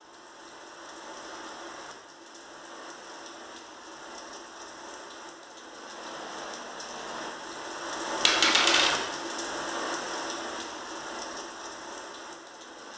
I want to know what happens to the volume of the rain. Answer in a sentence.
The volume of the rain goes up, then down.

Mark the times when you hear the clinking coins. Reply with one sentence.
The clinking coins can be heard from 8.2 to 8.9 s.